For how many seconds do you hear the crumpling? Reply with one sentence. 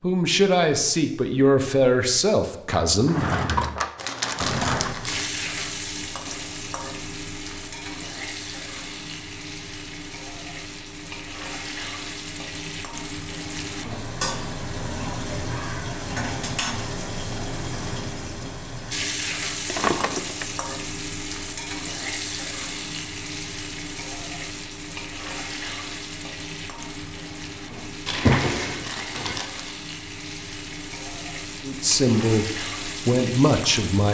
You can hear the crumpling for 3 seconds altogether.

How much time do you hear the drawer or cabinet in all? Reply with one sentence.
The drawer or cabinet can be heard for 4 seconds in total.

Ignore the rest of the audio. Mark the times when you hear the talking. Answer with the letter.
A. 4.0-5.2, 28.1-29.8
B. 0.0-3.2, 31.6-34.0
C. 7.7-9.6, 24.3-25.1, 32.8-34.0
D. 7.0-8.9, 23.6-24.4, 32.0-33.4
B.